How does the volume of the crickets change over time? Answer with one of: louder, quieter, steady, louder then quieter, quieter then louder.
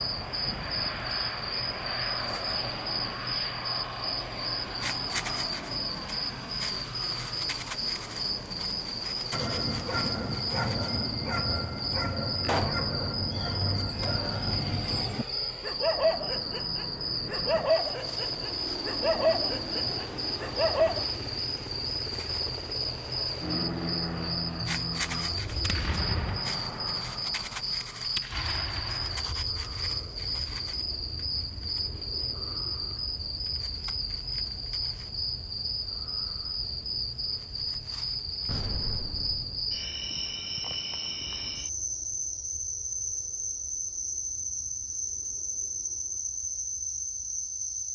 steady.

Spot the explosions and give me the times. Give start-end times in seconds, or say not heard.
12.4-12.8, 25.4-29.2, 38.5-39.8.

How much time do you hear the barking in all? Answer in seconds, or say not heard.
12 s.